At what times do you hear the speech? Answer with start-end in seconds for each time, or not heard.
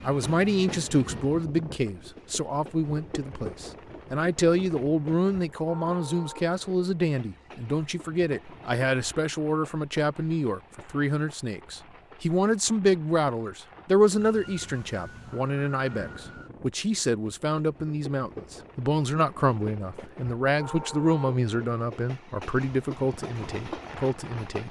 0.0-24.6.